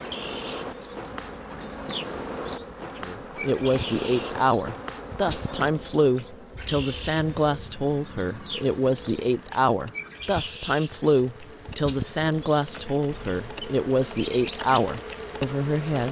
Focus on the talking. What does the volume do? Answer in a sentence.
The loudness of the talking stays about the same.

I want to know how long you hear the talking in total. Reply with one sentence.
The talking can be heard for 13 seconds in total.